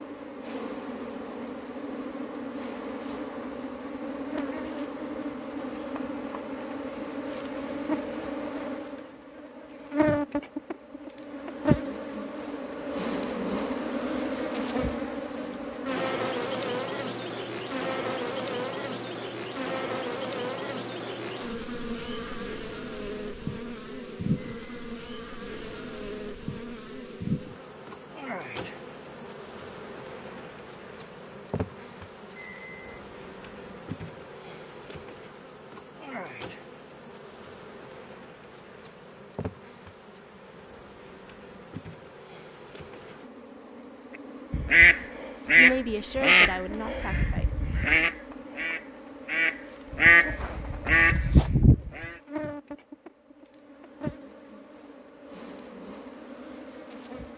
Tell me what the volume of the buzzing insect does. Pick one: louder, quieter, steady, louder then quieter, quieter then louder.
quieter.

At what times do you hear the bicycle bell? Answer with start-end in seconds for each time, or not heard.
24.4-25.0, 32.4-33.0.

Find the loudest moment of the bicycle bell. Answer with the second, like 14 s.
33 s.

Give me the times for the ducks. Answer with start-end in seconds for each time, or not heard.
44.5-52.1.